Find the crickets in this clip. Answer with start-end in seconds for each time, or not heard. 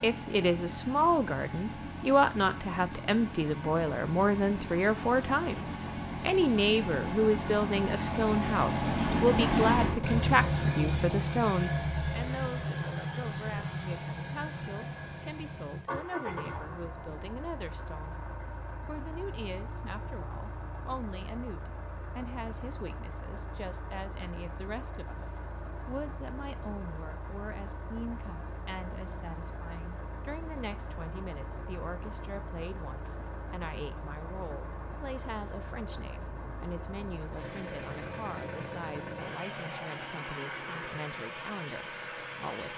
not heard.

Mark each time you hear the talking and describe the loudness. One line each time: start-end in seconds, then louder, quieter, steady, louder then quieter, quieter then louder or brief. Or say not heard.
0.0-42.7 quieter.